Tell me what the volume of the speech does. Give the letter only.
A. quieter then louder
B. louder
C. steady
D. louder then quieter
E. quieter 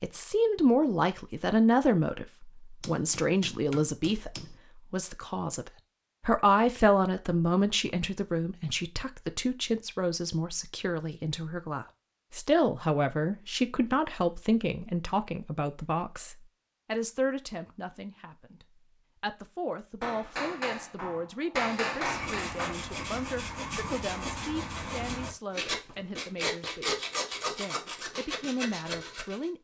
E.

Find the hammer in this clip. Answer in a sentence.
The hammer can be heard from 2.8 to 4.5 s and from 20.0 to 22.8 s.